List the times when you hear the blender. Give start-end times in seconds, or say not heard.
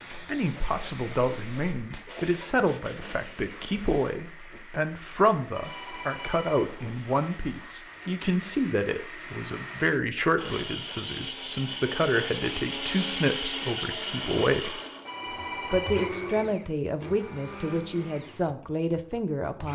0.0-19.7.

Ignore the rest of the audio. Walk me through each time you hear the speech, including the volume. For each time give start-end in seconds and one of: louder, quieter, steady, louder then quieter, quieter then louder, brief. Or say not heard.
0.1-14.8 steady
15.7-19.7 steady.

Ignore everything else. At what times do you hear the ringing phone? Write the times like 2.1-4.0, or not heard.
5.5-7.0, 15.1-16.1.